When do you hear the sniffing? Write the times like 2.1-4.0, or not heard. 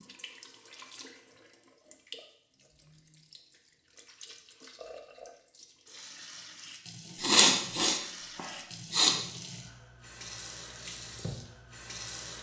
7.2-9.2.